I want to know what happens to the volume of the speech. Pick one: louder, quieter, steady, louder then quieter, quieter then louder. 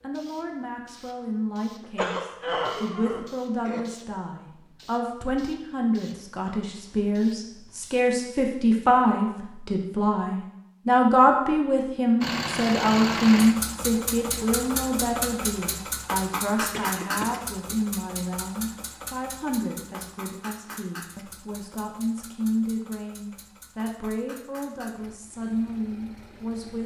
louder then quieter.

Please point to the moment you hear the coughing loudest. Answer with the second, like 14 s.
3 s.